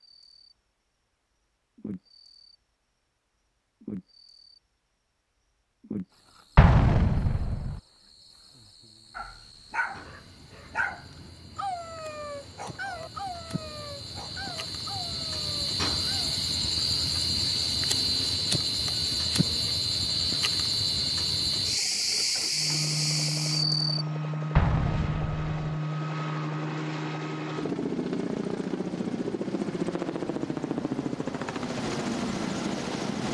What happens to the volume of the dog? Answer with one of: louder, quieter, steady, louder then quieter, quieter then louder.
quieter.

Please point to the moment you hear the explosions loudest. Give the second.
7 s.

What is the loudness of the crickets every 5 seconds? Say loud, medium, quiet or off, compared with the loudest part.
quiet, quiet, quiet, loud, loud, off, off.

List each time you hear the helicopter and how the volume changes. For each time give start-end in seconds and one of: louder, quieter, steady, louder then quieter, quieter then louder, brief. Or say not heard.
22.5-33.2 steady.